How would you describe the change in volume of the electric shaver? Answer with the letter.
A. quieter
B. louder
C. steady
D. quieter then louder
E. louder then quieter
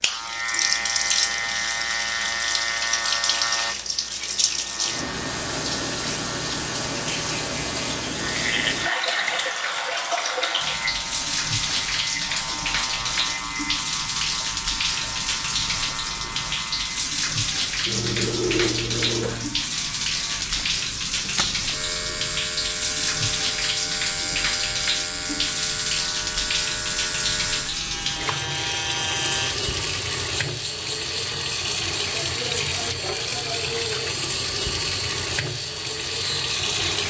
C.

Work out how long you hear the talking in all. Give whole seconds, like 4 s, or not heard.
not heard.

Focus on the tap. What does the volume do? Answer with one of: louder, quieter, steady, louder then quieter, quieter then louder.
steady.